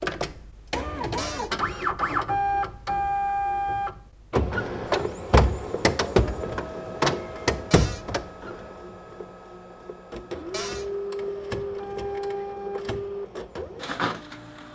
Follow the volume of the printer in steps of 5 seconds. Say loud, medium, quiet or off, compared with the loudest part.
loud, loud, medium.